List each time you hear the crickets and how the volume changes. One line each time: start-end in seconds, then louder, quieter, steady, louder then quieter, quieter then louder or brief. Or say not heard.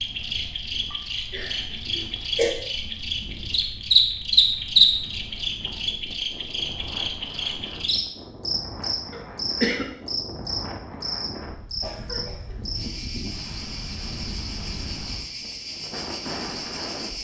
0.0-17.1 louder then quieter.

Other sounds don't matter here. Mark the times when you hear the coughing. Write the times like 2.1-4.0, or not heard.
0.9-2.5, 9.1-9.8, 11.8-12.9.